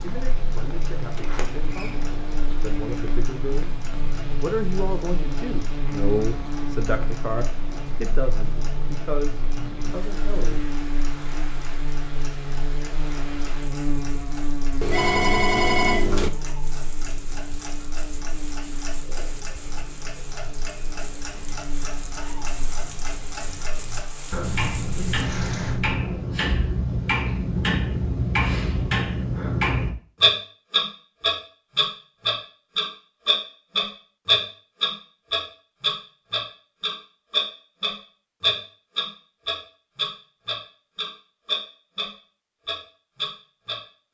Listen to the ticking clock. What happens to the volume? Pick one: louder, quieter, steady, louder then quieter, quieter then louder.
louder.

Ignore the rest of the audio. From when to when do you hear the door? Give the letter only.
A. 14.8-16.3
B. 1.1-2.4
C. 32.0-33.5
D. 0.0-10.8
B.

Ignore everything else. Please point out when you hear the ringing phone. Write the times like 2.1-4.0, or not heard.
14.8-16.3.